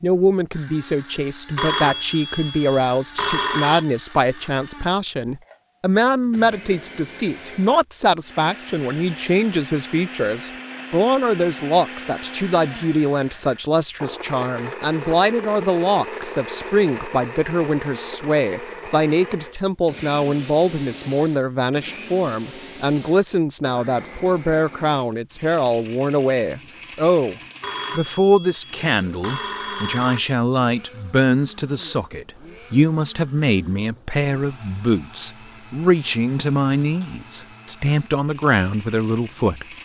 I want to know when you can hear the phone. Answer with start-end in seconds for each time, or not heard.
1.6-3.9, 27.6-30.4.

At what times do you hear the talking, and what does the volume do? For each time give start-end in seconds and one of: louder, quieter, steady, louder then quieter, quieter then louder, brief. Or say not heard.
0.0-27.4 steady
27.9-39.6 steady.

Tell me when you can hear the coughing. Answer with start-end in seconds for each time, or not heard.
not heard.